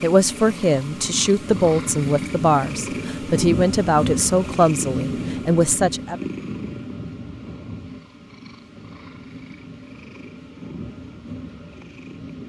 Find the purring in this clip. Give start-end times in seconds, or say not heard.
0.0-12.4.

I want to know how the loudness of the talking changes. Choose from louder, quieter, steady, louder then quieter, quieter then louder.
steady.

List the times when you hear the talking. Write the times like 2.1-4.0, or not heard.
0.0-6.2.